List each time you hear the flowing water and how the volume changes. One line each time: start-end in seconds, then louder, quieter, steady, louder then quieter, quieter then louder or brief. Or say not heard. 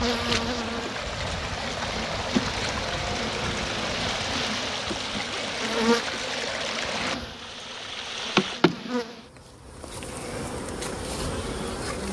0.0-8.7 steady.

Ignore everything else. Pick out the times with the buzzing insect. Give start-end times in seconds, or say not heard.
0.0-12.0.